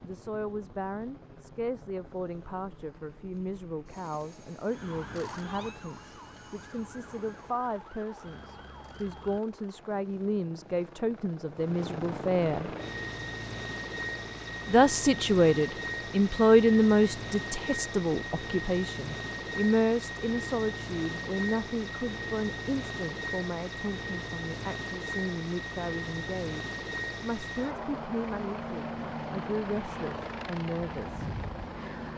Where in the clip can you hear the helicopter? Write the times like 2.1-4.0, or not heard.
0.0-32.1.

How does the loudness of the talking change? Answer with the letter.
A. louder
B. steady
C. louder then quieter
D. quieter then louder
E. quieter
C.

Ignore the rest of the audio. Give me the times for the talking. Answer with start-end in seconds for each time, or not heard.
0.0-12.7, 14.7-31.4.